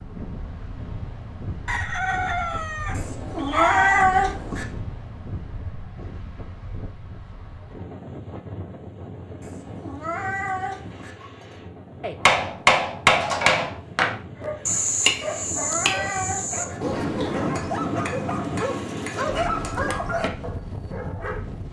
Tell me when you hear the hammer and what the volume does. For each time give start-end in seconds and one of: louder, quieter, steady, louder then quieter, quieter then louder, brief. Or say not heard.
12.2-20.4 quieter.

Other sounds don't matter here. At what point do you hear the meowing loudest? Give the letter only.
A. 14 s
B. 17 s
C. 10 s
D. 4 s
D.